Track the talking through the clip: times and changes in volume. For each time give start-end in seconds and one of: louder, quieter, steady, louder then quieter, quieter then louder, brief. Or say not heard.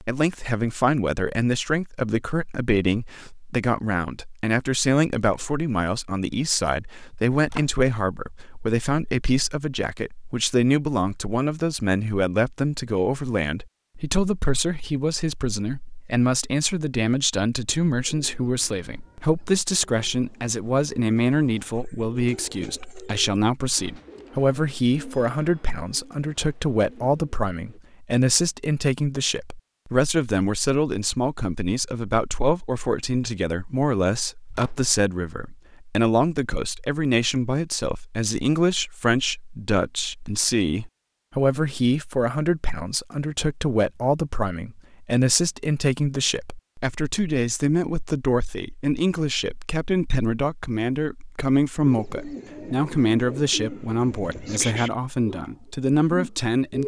0.0-56.8 steady.